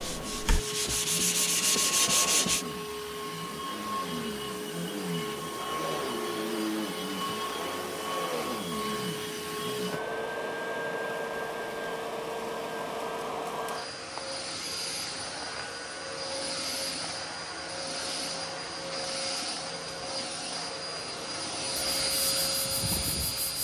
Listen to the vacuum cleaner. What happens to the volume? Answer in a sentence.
The loudness of the vacuum cleaner stays about the same.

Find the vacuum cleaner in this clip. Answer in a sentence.
The vacuum cleaner can be heard from 0.0 to 23.6 s.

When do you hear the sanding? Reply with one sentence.
The sanding can be heard from 0.0 to 2.6 s and from 21.8 to 23.6 s.